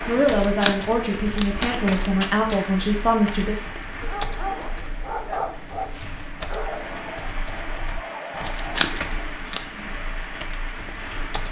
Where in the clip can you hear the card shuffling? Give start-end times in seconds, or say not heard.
0.2-2.7, 8.3-9.6.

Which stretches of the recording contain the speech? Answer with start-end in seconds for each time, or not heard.
0.1-3.5.